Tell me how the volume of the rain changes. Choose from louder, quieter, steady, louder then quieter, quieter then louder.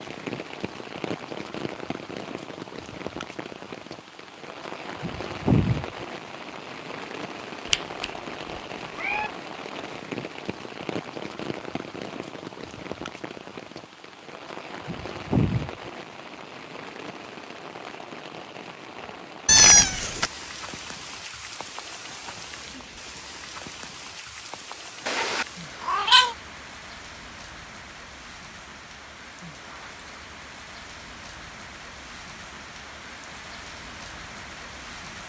quieter.